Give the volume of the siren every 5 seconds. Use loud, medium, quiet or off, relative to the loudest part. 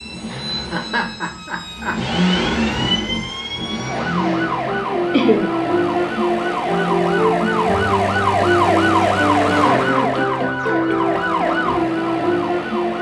medium, loud, loud.